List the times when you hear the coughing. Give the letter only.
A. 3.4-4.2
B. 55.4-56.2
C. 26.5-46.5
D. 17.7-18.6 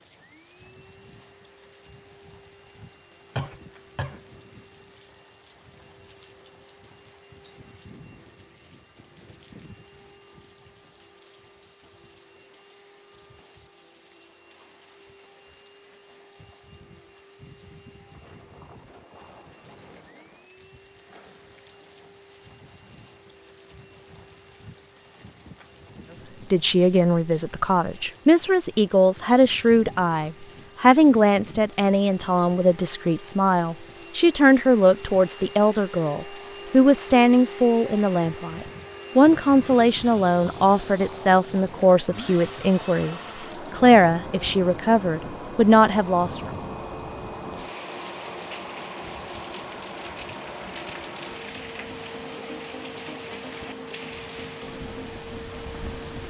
A.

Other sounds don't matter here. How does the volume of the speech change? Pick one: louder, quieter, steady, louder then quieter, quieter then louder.
steady.